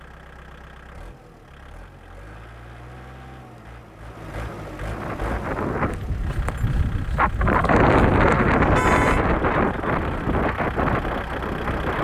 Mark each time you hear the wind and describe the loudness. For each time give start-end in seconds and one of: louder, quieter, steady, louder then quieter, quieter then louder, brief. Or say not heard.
4.9-11.9 louder then quieter.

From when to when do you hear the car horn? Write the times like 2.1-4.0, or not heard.
8.6-9.2.